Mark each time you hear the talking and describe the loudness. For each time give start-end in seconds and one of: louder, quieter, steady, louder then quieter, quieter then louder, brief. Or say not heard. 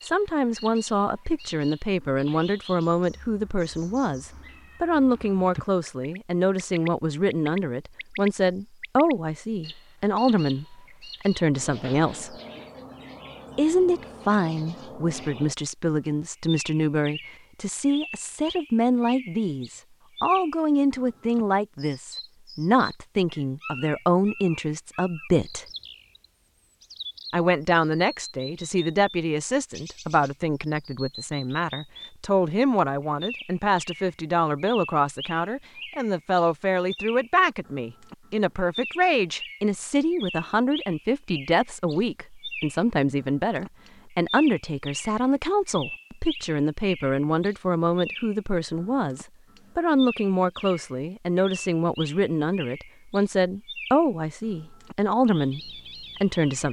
0.0-12.3 steady
13.6-25.6 steady
27.3-56.6 steady.